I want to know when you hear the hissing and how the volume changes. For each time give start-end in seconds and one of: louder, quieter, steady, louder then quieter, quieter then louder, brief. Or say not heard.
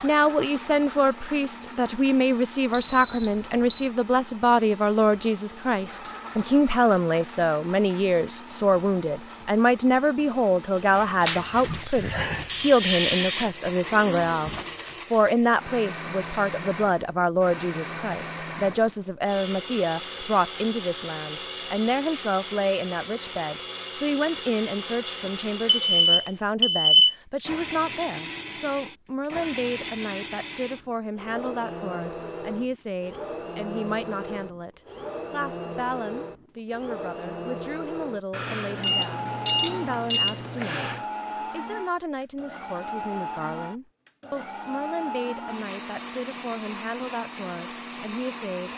10.8-15.2 louder then quieter.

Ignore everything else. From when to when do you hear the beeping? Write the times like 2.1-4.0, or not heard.
2.7-3.9, 25.6-27.1, 38.3-41.0.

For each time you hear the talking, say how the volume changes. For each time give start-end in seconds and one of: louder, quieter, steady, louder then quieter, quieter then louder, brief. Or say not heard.
0.0-48.7 quieter.